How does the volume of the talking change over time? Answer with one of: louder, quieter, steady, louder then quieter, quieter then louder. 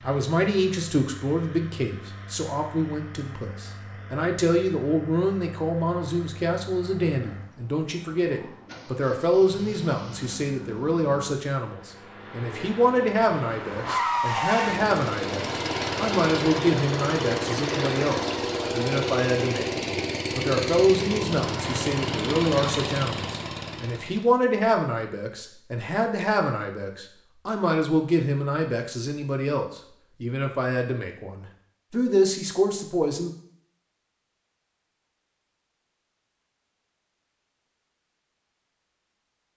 steady.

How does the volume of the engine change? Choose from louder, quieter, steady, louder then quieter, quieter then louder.
louder.